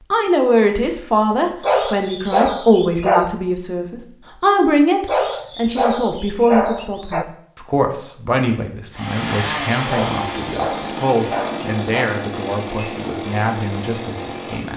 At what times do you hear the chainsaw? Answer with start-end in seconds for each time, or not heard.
8.9-14.7.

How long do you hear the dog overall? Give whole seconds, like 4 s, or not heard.
6 s.